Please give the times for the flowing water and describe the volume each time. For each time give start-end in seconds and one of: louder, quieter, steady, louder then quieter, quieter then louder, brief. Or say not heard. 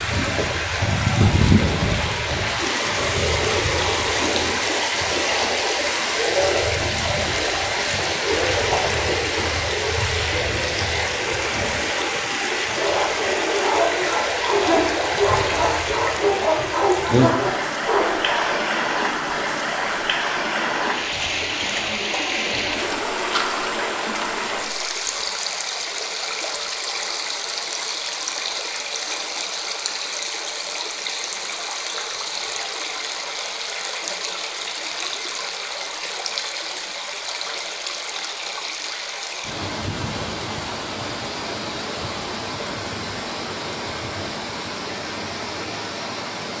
0.0-46.5 quieter.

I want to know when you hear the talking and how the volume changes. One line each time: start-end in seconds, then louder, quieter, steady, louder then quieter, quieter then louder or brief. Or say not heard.
not heard.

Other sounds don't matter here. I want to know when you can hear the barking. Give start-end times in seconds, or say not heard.
12.6-18.6.